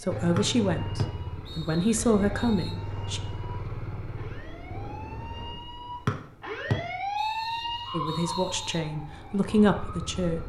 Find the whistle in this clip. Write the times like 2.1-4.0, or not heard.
0.3-2.8, 6.0-8.8.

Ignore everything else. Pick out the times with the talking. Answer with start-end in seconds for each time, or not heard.
0.0-3.2, 7.9-10.4.